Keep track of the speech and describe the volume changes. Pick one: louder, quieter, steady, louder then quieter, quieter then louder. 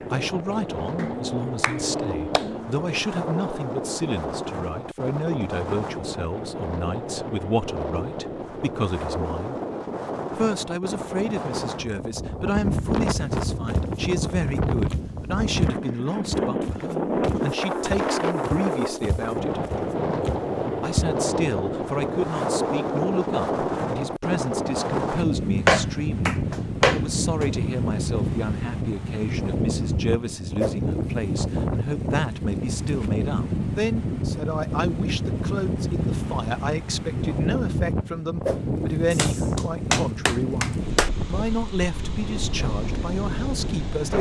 steady.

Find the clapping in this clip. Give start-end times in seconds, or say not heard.
0.9-2.7, 25.6-27.5, 39.1-41.1.